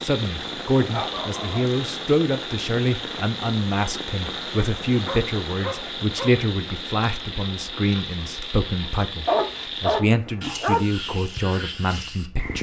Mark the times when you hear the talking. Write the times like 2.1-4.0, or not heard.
0.0-12.5.